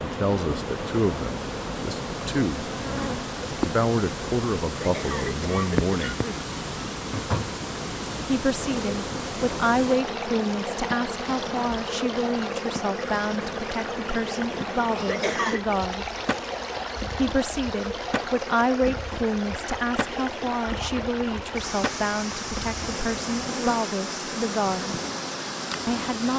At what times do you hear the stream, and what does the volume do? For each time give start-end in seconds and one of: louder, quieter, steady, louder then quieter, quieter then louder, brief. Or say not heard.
0.0-26.3 steady.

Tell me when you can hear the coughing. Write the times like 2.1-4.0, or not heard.
4.8-6.5, 15.1-15.7.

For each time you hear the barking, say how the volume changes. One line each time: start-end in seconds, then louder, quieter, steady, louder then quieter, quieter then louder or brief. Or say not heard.
not heard.